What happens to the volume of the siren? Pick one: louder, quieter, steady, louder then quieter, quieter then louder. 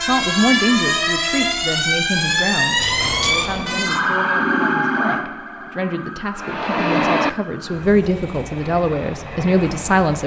quieter.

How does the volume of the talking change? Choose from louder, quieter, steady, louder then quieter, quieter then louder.
quieter then louder.